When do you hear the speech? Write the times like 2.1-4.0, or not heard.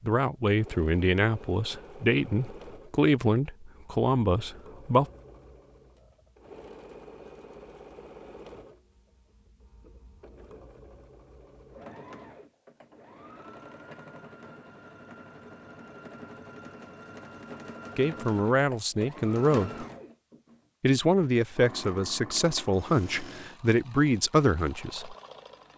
0.0-5.0, 17.9-19.9, 20.8-25.1.